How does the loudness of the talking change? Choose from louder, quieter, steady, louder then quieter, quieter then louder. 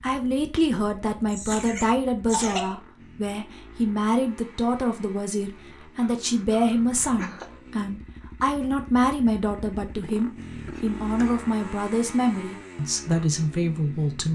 steady.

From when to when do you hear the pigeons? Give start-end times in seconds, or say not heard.
not heard.